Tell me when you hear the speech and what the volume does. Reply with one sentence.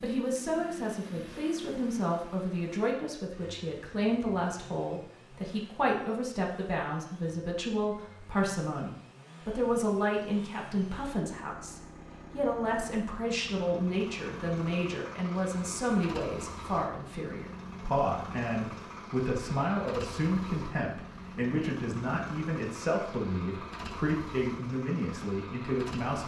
The speech can be heard from 0.0 to 26.2 s, at a steady volume.